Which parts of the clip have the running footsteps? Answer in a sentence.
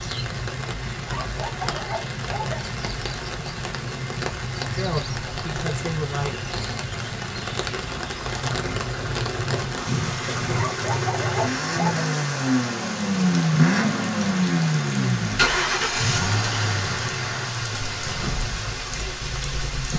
The running footsteps can't be heard in this clip.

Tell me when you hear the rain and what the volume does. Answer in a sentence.
The rain can be heard from 0.0 to 19.9 s, at a steady volume.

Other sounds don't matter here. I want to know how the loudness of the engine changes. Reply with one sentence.
The loudness of the engine goes up, then down.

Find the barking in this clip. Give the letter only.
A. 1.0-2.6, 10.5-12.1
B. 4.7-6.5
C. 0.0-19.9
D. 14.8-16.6
A.